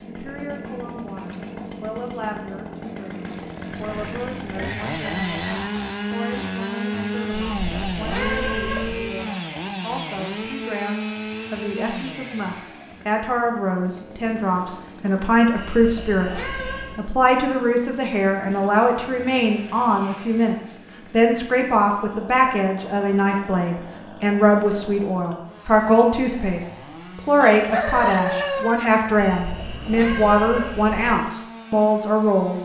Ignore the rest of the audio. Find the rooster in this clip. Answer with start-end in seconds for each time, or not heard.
3.6-5.7, 27.4-28.9.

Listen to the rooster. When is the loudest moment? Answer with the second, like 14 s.
28 s.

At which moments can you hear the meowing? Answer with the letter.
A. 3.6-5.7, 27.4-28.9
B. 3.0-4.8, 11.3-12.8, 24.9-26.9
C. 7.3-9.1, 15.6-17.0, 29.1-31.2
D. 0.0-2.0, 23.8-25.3
C.